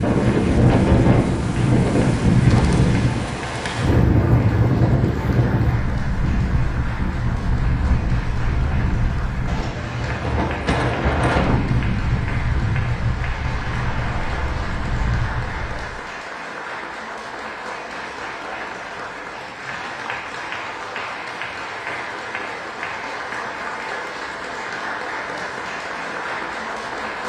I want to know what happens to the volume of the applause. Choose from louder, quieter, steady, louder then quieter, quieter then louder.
louder.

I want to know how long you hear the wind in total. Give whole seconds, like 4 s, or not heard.
16 s.